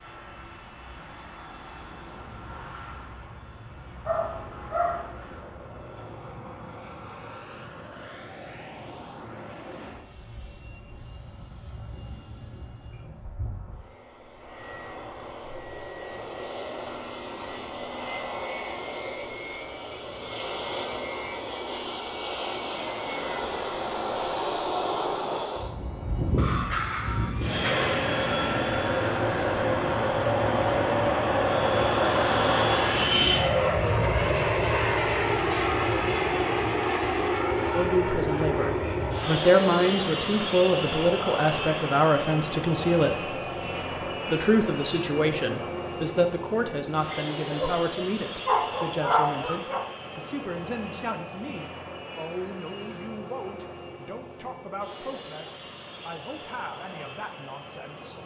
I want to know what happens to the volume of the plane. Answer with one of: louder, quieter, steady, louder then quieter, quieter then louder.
louder then quieter.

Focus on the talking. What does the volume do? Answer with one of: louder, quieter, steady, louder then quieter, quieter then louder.
quieter.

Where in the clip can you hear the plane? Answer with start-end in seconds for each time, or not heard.
0.0-58.2.